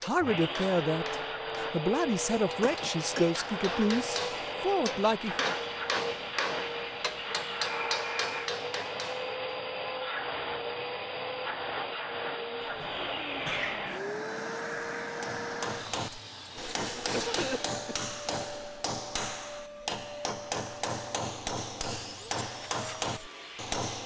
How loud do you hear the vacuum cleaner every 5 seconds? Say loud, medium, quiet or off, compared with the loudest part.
loud, loud, loud, medium, medium.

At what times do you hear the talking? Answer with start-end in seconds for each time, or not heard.
0.0-5.5.